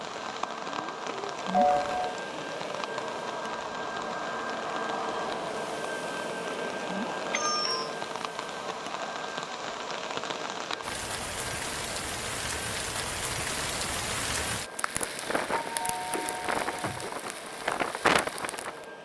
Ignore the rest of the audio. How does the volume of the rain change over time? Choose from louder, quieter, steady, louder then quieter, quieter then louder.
louder.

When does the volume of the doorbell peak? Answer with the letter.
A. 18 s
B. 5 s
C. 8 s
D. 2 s
D.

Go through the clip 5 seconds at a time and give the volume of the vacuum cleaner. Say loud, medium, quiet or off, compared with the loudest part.
loud, loud, medium, medium.